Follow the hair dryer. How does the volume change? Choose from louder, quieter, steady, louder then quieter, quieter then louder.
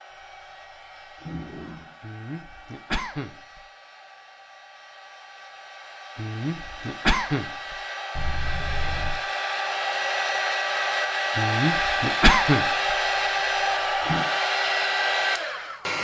louder.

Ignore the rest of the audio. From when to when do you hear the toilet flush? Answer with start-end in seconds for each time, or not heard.
1.1-1.9, 8.2-9.2, 13.0-14.2.